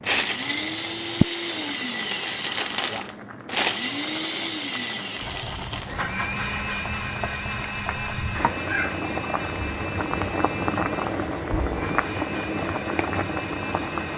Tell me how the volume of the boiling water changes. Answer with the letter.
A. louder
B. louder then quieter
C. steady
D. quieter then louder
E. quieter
D.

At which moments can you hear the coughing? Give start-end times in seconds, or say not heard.
not heard.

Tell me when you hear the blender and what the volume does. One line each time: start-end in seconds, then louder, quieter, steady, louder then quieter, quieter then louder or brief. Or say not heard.
0.0-14.1 quieter.